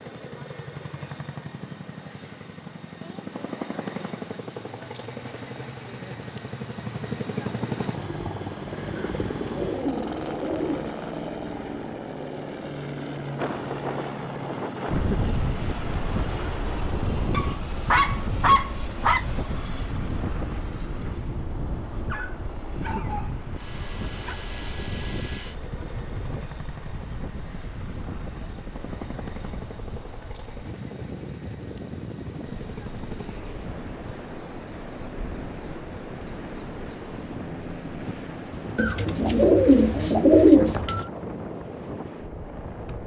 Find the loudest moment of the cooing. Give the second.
40 s.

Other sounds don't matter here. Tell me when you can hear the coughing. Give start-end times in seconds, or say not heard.
not heard.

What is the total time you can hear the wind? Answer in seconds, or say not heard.
30 s.